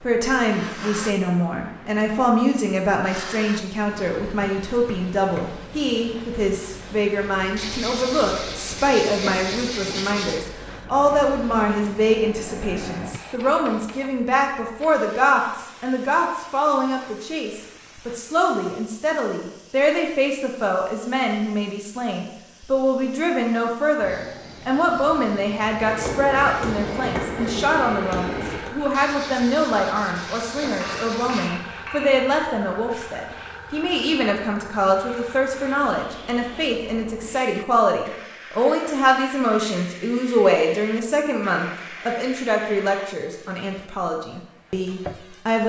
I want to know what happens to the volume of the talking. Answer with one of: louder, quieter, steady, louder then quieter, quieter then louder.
steady.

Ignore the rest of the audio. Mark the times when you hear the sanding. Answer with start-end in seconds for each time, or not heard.
7.5-10.4, 28.9-31.5.